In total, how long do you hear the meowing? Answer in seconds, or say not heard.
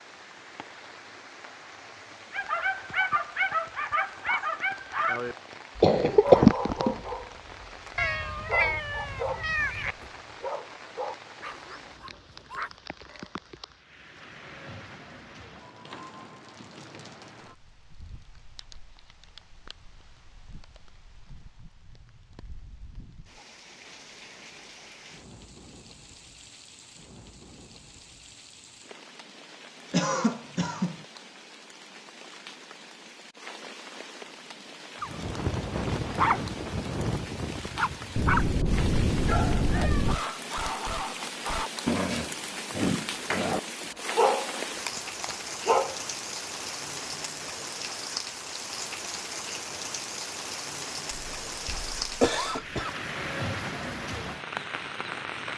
4 s.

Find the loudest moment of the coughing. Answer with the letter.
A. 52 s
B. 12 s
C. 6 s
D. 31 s
C.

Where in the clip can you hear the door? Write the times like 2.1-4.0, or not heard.
not heard.